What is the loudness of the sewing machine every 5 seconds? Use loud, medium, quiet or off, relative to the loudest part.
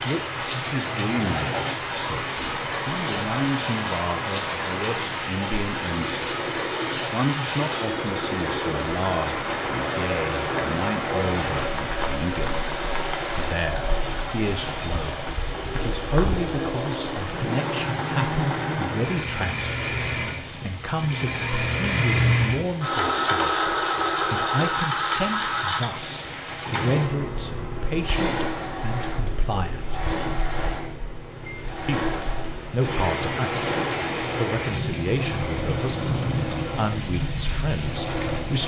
medium, medium, medium, medium, loud, medium, medium, medium.